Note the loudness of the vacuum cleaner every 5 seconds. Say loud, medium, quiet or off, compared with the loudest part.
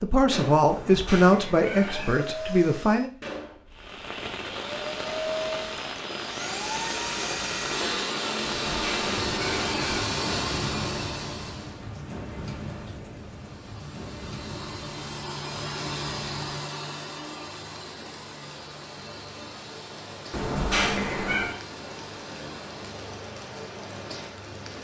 medium, loud, loud, medium, quiet.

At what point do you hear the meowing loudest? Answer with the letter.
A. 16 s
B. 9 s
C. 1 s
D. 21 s
D.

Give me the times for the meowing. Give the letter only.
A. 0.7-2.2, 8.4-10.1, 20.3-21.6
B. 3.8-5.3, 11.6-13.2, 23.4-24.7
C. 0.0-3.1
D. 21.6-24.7
A.